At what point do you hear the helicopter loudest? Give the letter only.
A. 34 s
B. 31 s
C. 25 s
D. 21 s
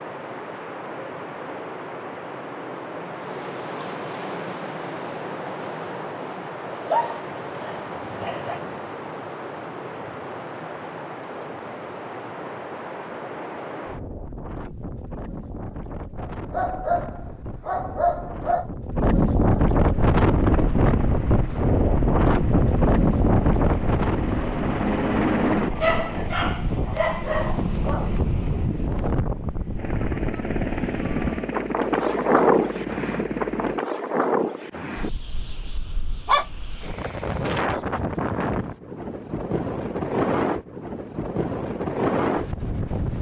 C.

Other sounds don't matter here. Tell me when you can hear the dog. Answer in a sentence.
The dog can be heard from 6.7 to 8.6 s, from 16.1 to 18.7 s, from 25.8 to 28.1 s and from 36.2 to 37.8 s.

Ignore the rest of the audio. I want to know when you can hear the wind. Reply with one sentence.
The wind can be heard from 0.0 to 43.1 s.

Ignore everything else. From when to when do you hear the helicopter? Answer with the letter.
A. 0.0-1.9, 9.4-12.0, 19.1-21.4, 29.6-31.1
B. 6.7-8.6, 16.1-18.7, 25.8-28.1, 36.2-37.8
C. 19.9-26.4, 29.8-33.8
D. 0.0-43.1
C.